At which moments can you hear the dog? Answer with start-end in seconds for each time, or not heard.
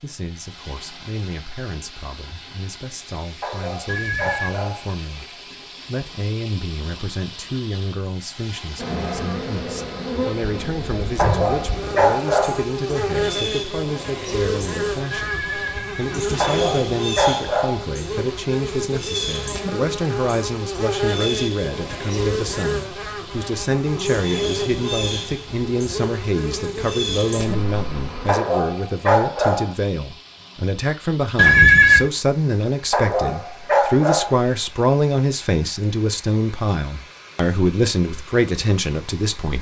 3.4-4.8, 11.2-12.7, 16.4-17.9, 28.2-29.8, 32.9-34.4.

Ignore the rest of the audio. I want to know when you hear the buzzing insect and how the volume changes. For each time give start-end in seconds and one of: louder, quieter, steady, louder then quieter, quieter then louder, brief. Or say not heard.
8.8-28.3 steady.